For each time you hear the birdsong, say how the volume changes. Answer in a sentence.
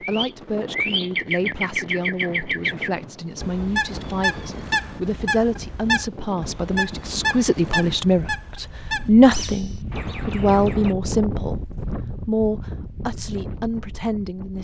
The birdsong can be heard from 0.0 to 10.9 s, getting quieter.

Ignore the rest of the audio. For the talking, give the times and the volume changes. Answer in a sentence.
You can hear the talking from 0.0 to 14.5 s, getting louder then quieter.